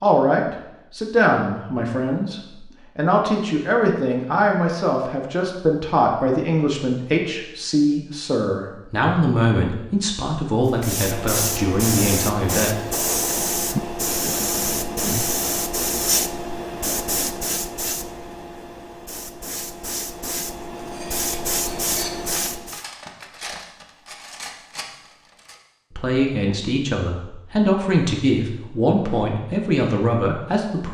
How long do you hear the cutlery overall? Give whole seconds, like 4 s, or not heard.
5 s.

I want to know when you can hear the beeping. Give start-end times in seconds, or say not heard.
not heard.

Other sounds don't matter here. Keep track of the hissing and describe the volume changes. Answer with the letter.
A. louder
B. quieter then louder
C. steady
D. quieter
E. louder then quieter
B.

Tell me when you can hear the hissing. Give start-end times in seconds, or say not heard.
10.7-22.9.